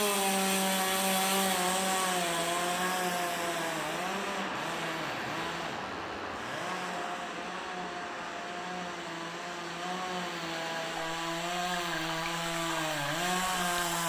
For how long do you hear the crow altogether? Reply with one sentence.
You can't hear the crow here.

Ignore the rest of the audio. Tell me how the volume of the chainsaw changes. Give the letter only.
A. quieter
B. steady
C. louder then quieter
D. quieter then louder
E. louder
D.